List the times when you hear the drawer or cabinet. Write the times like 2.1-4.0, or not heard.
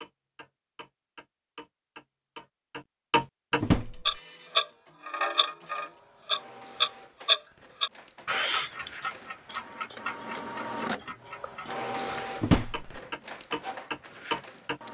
3.6-4.1, 12.4-12.9.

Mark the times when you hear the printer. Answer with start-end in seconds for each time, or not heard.
3.8-14.8.